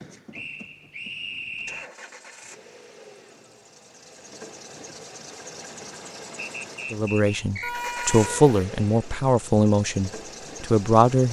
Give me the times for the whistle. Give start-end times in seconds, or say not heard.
0.3-1.9, 6.6-7.8.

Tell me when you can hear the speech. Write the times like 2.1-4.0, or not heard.
6.9-11.2.